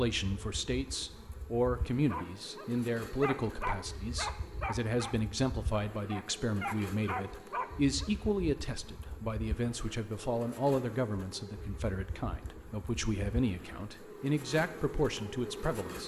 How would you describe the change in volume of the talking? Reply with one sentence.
The volume of the talking stays about the same.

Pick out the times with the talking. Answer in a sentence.
You can hear the talking from 0.0 to 16.0 s.